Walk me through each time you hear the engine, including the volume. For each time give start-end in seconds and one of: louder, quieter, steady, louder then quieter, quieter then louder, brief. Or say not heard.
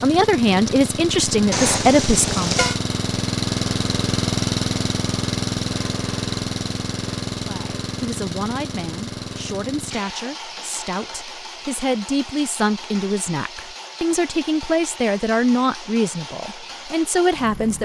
0.0-17.8 quieter.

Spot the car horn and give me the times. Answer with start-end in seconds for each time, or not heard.
1.5-2.8.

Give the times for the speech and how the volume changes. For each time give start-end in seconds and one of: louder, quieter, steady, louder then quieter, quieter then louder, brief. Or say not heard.
0.0-2.5 brief
7.5-17.8 louder.